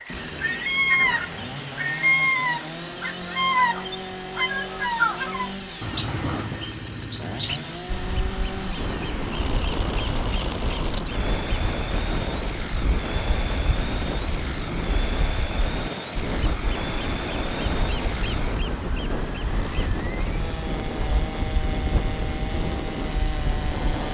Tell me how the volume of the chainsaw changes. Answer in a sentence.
The loudness of the chainsaw stays about the same.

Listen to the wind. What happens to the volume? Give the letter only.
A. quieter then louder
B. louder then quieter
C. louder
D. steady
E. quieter
D.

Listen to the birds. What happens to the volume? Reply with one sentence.
The volume of the birds goes down.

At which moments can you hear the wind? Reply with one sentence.
The wind can be heard from 8.8 to 24.0 s.